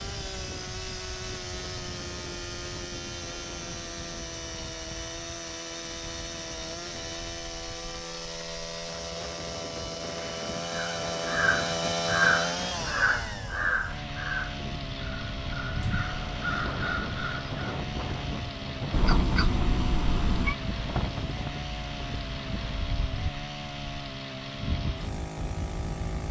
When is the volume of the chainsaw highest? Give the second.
12 s.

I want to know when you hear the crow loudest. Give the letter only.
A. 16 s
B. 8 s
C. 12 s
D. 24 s
C.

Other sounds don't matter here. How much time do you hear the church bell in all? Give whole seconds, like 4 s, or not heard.
not heard.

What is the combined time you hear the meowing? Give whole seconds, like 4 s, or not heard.
2 s.